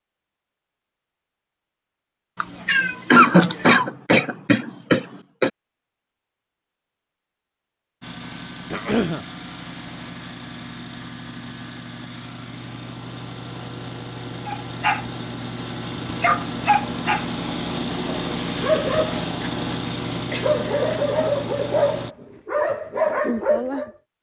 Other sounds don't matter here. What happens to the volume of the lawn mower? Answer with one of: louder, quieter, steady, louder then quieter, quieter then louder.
louder.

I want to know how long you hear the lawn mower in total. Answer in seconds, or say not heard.
14 s.